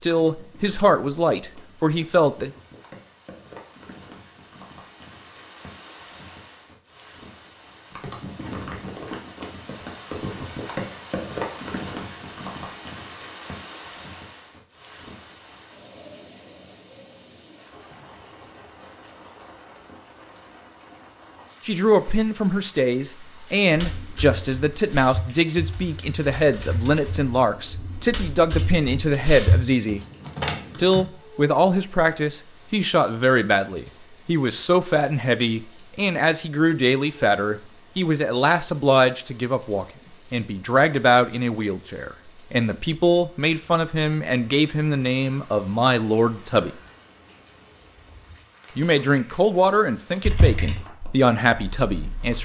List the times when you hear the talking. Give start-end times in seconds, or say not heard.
0.0-2.5, 21.6-30.1, 30.8-46.7, 48.8-52.3.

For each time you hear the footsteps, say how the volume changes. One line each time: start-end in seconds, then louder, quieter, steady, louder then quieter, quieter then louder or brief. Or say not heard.
not heard.